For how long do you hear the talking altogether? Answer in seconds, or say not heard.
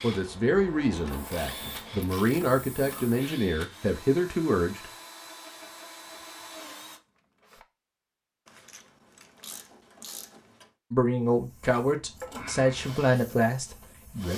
8 s.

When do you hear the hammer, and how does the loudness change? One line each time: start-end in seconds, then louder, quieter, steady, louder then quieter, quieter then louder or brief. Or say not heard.
not heard.